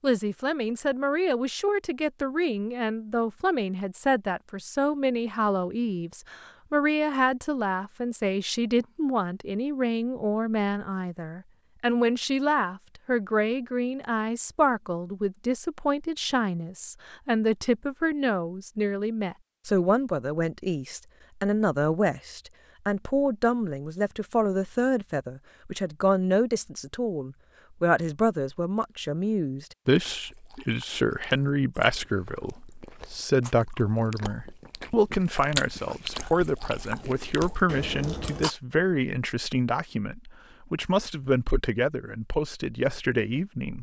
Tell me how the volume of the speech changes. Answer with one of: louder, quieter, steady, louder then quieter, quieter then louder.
steady.